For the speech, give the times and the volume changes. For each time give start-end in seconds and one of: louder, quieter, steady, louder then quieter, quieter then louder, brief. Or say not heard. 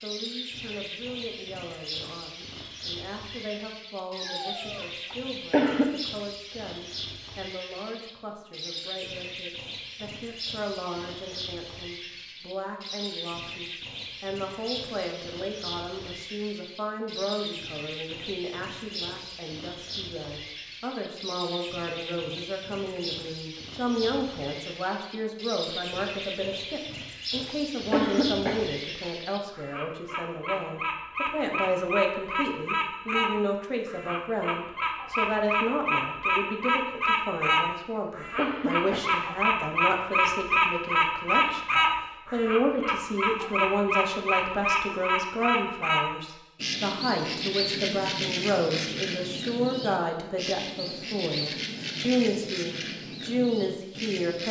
0.0-54.4 louder.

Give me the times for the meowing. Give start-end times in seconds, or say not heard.
4.0-4.8.